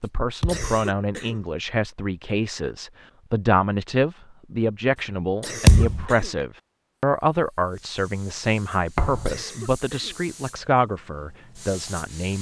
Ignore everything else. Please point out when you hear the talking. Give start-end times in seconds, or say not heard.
0.0-12.3.